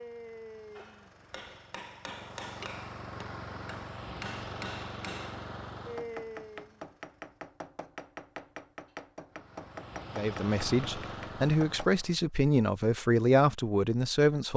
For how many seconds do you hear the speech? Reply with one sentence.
The speech can be heard for 4 seconds in total.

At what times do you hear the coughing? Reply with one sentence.
The coughing can't be heard in this clip.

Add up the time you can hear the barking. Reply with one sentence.
The barking can't be heard in this clip.